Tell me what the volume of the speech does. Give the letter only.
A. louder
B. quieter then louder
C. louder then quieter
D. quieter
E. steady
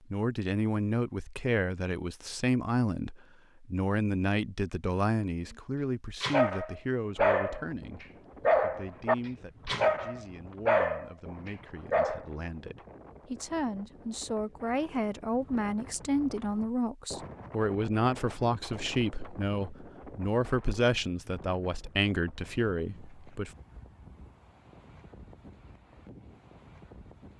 B.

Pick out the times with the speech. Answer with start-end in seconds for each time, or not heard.
0.1-23.5.